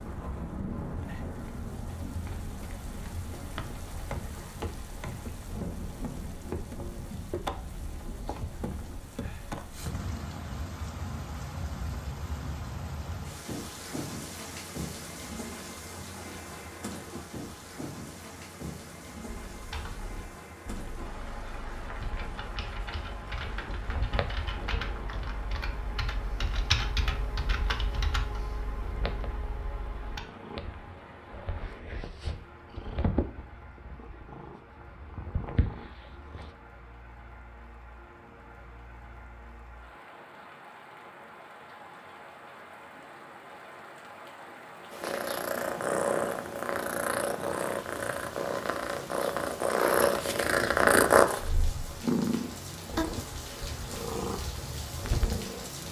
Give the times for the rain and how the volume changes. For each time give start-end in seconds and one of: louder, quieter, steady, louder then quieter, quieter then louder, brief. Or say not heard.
0.0-55.8 quieter then louder.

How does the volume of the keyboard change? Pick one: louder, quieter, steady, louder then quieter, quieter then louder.
louder then quieter.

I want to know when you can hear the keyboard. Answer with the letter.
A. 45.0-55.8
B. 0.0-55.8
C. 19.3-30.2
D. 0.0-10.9
C.